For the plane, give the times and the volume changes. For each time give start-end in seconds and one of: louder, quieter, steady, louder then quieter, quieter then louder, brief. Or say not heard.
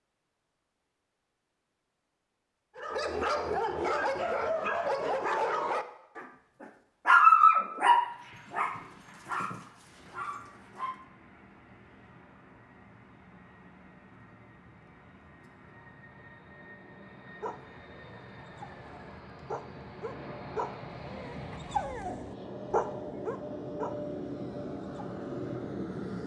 7.8-26.2 louder.